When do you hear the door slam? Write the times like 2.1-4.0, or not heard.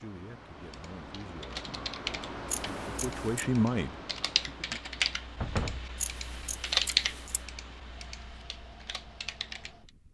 5.4-5.9.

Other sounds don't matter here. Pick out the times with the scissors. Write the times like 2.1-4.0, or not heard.
2.5-3.5, 6.0-7.4.